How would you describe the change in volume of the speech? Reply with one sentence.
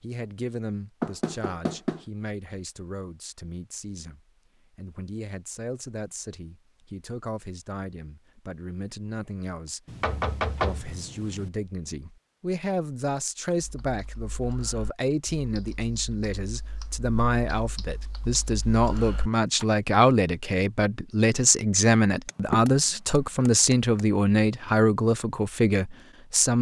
The loudness of the speech goes up.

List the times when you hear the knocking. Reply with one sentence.
The knocking can be heard from 1.0 to 2.0 s, from 9.8 to 11.5 s and from 22.2 to 24.1 s.